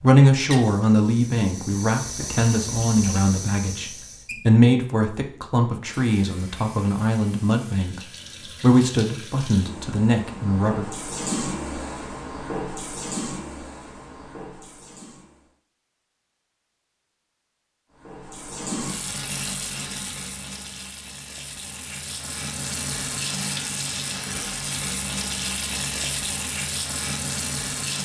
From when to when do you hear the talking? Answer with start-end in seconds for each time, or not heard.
0.0-10.8.